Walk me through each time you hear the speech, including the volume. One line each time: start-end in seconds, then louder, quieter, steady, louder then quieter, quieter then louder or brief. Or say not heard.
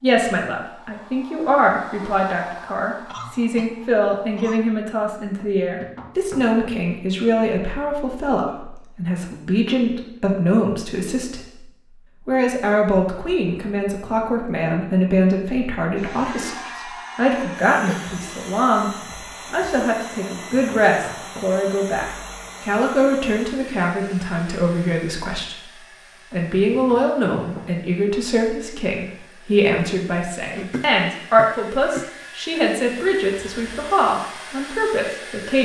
0.0-35.6 steady.